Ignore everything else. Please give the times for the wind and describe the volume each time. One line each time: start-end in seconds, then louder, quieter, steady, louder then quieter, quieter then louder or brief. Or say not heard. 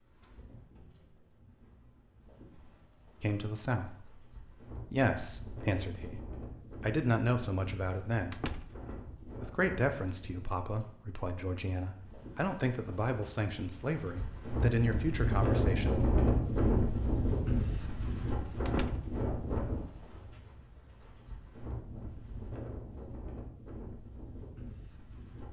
0.0-25.4 louder then quieter.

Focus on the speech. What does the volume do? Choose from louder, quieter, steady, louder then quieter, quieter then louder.
steady.